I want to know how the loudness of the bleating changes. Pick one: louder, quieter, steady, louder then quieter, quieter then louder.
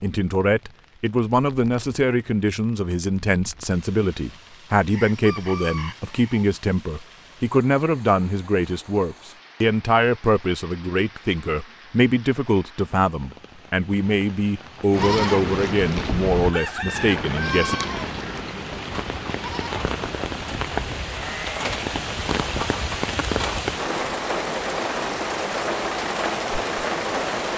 quieter.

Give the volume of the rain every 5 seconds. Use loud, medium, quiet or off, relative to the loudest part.
quiet, quiet, quiet, medium, loud, loud.